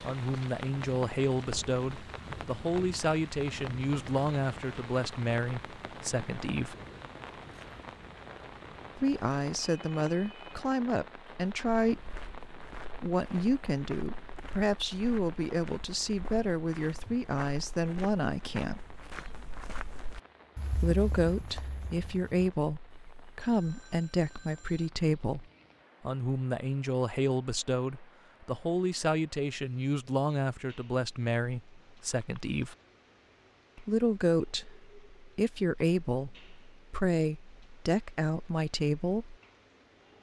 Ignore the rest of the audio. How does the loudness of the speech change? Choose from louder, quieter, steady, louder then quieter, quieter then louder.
steady.